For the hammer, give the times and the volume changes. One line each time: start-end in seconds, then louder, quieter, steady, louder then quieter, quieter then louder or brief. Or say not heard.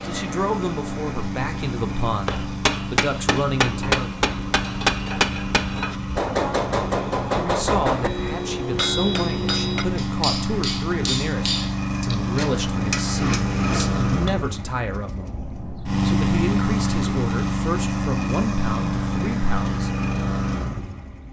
2.2-14.3 quieter.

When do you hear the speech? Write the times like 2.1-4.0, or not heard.
0.0-4.1, 7.3-19.9.